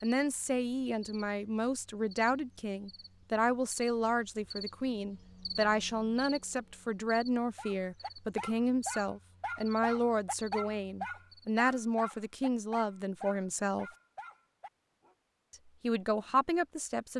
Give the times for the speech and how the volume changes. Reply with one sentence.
You can hear the speech from 0.0 to 13.9 s, at a steady volume; and briefly from 15.5 to 17.1 s.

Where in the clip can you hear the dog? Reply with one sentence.
The dog can be heard from 7.5 to 15.2 s.